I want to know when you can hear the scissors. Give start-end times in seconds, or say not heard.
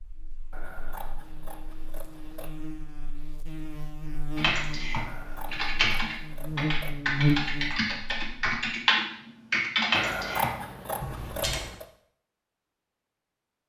0.5-2.5, 5.0-7.0, 9.9-11.8.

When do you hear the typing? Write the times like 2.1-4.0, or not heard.
4.3-11.6.